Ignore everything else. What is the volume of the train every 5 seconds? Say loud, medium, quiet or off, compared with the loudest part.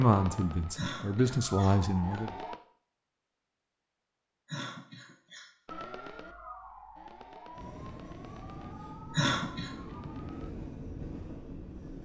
off, loud, loud.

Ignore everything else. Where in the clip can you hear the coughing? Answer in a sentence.
You can hear the coughing from 0.8 to 2.2 s, from 4.5 to 5.5 s and from 9.1 to 9.7 s.